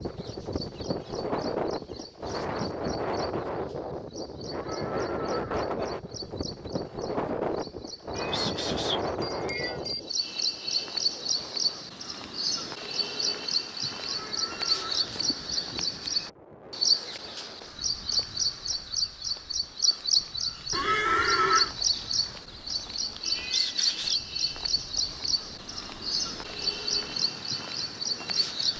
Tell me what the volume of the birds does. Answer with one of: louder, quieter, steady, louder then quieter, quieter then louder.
louder.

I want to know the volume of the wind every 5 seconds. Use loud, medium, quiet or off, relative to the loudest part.
loud, loud, quiet, quiet, quiet, quiet.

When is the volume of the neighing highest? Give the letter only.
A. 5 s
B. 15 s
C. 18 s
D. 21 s
D.